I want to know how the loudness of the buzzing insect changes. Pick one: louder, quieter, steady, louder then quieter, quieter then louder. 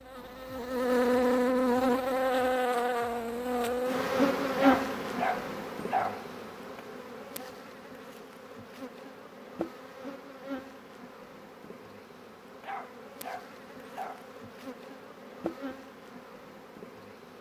quieter.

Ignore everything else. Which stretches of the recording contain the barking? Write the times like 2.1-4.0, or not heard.
4.5-6.2, 12.6-14.3.